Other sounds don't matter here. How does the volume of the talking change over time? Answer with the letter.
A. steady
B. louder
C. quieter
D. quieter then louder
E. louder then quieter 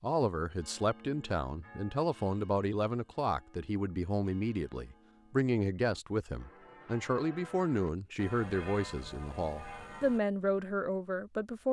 A.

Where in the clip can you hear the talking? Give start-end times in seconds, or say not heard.
0.0-11.6.